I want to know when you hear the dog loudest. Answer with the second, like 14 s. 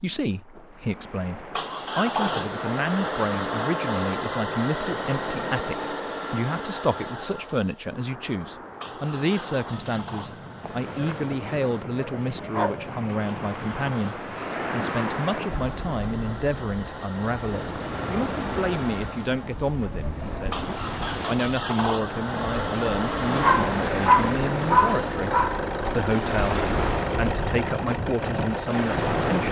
24 s.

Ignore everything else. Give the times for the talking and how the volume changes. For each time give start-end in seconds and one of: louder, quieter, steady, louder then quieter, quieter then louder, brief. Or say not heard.
0.0-20.6 steady
21.2-29.4 steady.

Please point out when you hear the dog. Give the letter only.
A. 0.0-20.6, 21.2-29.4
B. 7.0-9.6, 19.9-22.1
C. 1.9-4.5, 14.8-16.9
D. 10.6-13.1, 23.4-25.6
D.